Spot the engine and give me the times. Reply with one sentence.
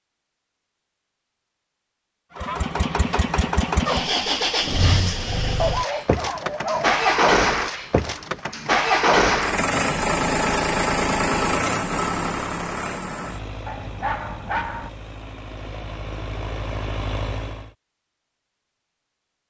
The engine can be heard from 2.4 to 17.7 s.